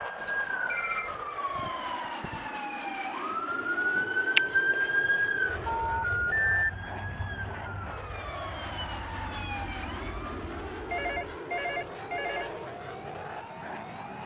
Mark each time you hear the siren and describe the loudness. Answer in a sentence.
The siren can be heard from 0.0 to 14.2 s, getting louder then quieter.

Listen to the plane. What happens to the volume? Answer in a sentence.
The volume of the plane stays about the same.